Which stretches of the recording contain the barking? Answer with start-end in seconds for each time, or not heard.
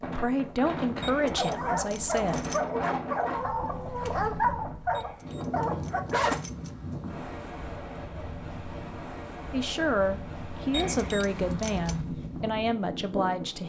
1.4-6.4.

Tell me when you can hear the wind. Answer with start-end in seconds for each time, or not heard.
0.0-13.6.